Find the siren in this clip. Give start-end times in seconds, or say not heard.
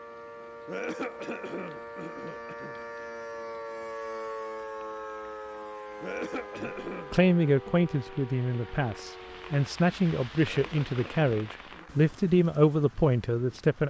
0.0-9.7.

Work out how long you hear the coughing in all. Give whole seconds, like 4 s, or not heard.
5 s.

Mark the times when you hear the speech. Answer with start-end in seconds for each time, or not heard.
6.6-13.8.